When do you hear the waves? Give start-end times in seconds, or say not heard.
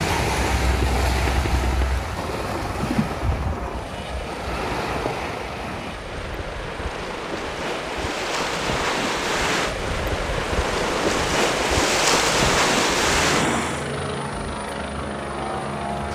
0.0-13.9.